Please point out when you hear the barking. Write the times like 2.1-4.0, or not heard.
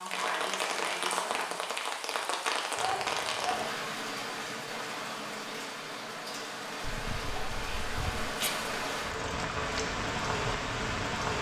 2.8-3.7, 6.8-8.3.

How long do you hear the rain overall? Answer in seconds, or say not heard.
11 s.